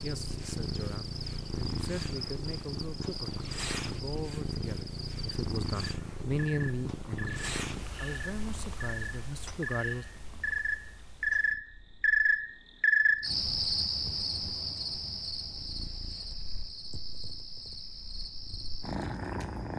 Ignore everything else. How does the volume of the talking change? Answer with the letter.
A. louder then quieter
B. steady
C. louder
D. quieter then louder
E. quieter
A.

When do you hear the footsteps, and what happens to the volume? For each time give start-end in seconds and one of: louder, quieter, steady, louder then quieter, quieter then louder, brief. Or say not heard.
not heard.